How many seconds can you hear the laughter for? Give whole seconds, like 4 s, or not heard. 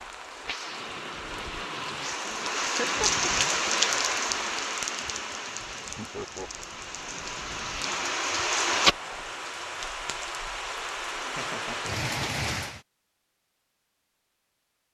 2 s.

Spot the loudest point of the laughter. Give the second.
3 s.